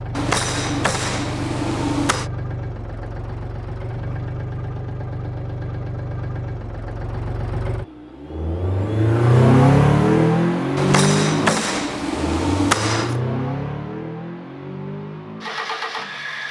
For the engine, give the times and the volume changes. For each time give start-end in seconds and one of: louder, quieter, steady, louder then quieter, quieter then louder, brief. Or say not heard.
0.0-16.4 louder then quieter.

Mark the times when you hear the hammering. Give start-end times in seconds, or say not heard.
0.1-2.3, 10.8-13.2.